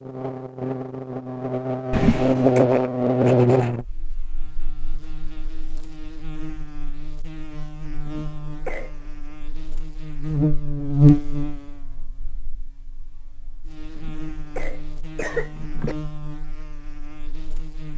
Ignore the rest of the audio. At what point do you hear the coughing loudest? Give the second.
2 s.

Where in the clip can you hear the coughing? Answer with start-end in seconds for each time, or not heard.
1.9-2.6, 8.0-9.1, 13.9-15.9.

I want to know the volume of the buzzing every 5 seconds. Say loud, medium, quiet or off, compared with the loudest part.
loud, quiet, loud, quiet.